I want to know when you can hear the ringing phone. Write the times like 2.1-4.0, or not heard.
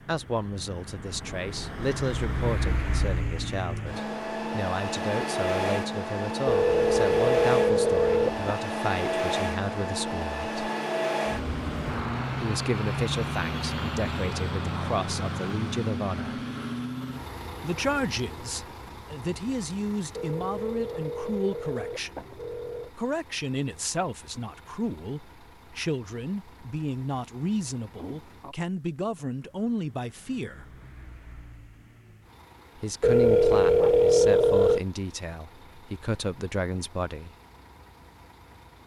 6.5-8.6, 20.1-22.9, 33.0-34.8.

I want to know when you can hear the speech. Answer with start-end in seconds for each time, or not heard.
0.1-10.7, 12.3-16.4, 17.6-30.7, 32.8-37.4.